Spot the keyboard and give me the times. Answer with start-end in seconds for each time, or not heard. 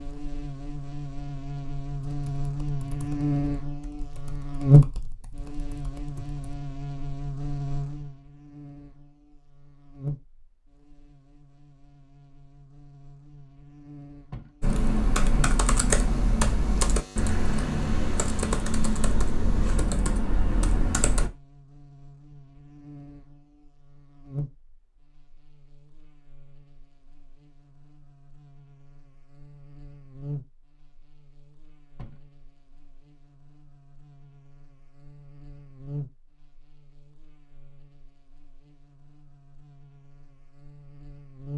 2.0-6.6, 14.6-21.3.